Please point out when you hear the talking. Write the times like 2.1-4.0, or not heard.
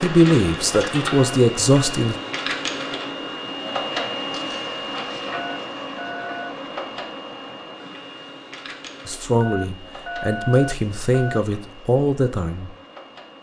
0.0-2.1, 9.1-12.7.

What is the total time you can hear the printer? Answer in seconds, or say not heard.
13 s.